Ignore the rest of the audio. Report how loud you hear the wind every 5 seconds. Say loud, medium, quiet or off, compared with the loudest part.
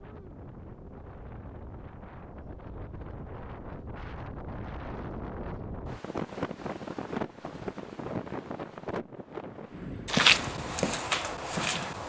medium, loud, medium.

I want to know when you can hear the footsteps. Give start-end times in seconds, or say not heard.
10.1-12.0.